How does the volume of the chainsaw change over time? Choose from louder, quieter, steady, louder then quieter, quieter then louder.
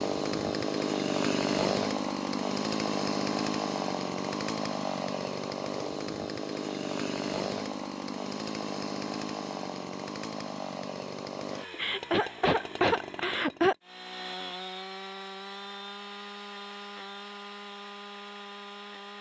quieter.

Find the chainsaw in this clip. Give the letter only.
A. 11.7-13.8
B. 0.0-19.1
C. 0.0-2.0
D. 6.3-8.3
B.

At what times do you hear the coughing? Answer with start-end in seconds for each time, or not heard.
11.7-13.8.